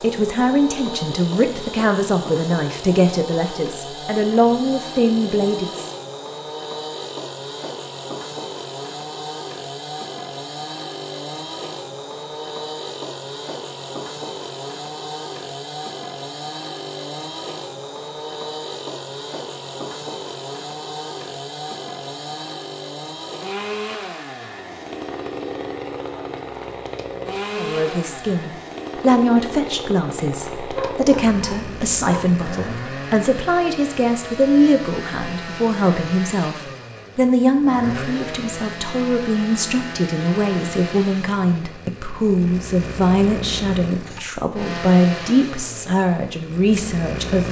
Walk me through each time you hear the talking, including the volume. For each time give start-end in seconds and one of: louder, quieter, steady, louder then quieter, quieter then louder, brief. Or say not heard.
0.0-5.9 steady
27.6-47.4 steady.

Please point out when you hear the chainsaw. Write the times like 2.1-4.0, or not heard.
0.0-47.4.